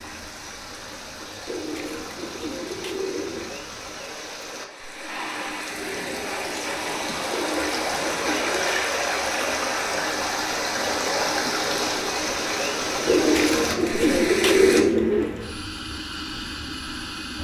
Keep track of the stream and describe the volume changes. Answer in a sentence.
The volume of the stream goes up.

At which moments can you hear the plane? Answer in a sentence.
You can hear the plane from 0.0 to 17.3 s.